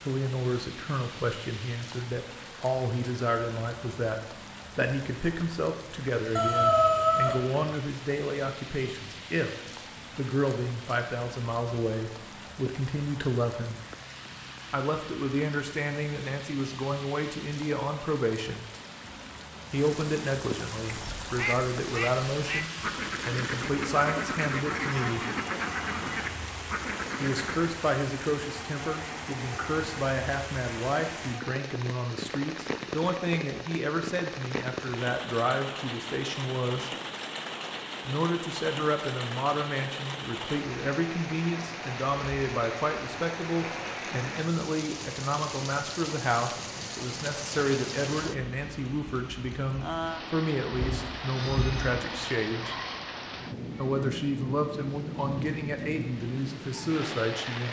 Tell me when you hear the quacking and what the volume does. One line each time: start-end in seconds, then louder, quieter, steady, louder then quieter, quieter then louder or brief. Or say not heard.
20.9-27.8 steady.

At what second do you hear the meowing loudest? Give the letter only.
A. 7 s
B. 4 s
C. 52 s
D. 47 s
A.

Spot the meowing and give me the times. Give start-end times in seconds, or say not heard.
6.3-7.6, 50.7-52.0.